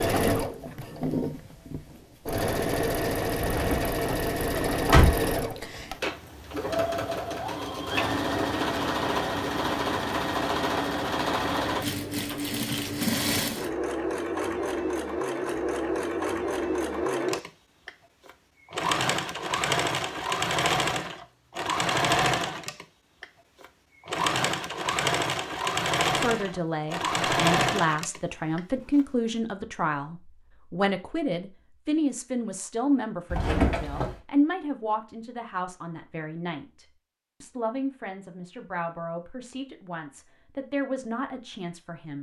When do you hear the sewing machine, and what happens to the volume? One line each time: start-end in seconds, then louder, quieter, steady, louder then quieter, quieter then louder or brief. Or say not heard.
0.0-29.0 steady.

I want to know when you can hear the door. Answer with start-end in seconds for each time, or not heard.
3.5-5.2, 33.3-34.1.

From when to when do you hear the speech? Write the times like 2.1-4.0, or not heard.
26.1-42.1.